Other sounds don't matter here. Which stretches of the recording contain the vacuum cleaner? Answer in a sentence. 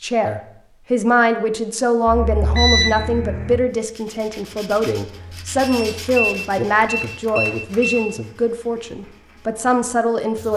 The vacuum cleaner can't be heard in this clip.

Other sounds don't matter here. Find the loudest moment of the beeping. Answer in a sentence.
The loudest moment of the beeping is at 3 seconds.